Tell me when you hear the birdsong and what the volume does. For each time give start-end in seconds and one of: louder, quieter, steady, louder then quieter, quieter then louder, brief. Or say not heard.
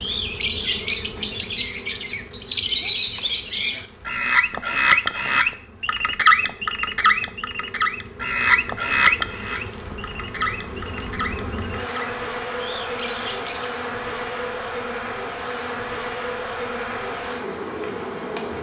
0.0-13.8 quieter.